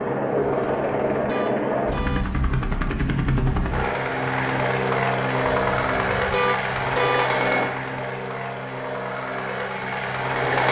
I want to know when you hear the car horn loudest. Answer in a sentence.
The volume of the car horn peaks at 7 seconds.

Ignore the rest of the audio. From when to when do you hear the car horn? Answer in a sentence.
The car horn can be heard from 0.4 to 2.2 s and from 5.5 to 7.3 s.